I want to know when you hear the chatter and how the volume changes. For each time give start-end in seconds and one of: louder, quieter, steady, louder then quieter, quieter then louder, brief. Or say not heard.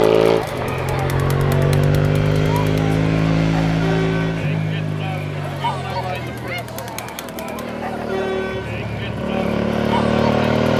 0.2-10.4 steady.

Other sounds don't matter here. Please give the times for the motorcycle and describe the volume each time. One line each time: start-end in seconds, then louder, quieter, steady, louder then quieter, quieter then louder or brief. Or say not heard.
0.0-10.7 quieter then louder.